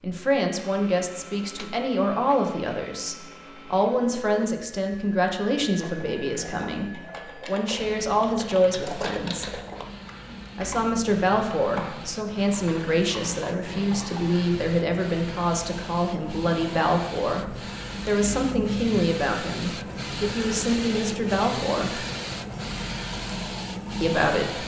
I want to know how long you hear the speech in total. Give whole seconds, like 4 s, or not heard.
22 s.